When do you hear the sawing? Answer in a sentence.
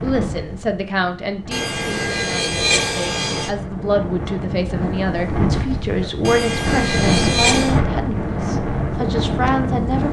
You can hear the sawing from 1.5 to 3.5 s and from 6.2 to 7.8 s.